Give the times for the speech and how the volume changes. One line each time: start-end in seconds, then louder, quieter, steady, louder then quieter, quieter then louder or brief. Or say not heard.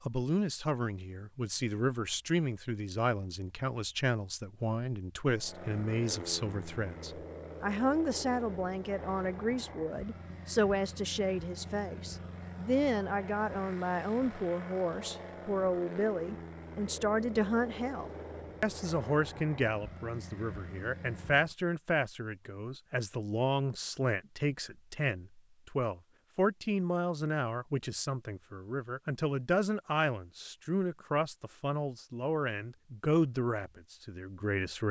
0.0-34.8 steady.